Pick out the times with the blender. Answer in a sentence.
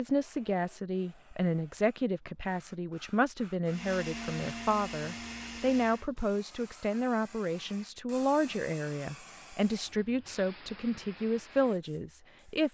The blender can be heard from 3.6 to 6.1 s.